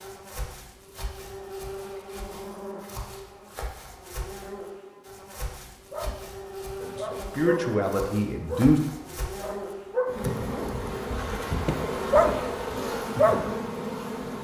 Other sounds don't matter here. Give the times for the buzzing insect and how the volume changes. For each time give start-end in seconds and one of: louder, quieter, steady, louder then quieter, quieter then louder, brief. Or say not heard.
0.0-14.3 louder.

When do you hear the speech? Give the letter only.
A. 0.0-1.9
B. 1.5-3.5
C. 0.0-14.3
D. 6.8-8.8
D.